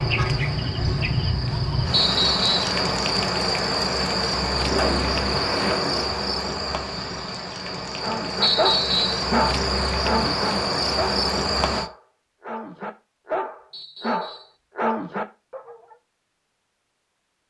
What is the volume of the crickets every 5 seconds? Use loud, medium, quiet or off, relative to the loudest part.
loud, loud, loud, off.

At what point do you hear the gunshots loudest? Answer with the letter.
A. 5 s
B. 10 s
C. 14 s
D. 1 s
A.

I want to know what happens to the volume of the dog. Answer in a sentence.
The loudness of the dog goes down, then up.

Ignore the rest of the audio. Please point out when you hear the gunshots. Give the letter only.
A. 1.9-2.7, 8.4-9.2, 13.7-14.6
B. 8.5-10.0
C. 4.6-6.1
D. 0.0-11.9
C.